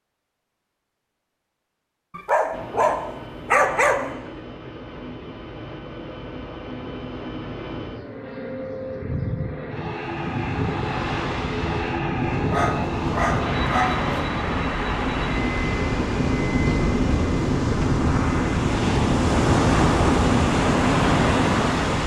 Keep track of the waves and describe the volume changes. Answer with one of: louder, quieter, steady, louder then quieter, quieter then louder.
louder.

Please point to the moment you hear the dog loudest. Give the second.
4 s.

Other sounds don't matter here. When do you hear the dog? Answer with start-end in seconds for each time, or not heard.
2.1-4.2, 12.5-14.1.